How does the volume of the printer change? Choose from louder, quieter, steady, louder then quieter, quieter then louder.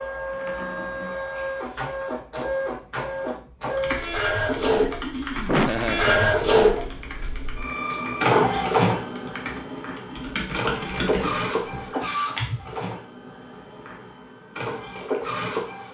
louder then quieter.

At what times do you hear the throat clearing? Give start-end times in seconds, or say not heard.
4.5-5.5, 9.5-10.4.